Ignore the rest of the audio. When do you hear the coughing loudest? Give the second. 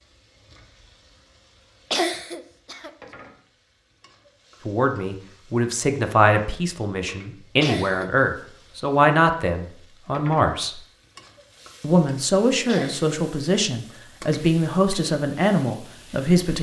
2 s.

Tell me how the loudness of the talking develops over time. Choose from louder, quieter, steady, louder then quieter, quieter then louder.
steady.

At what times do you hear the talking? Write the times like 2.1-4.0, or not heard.
4.7-10.8, 11.8-16.5.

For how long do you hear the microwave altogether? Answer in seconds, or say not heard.
not heard.